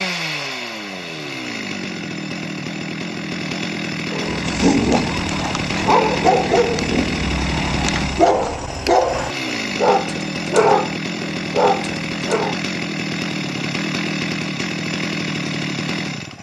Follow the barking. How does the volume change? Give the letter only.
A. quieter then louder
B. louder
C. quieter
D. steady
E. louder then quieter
D.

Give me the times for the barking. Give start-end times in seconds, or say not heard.
4.1-12.6.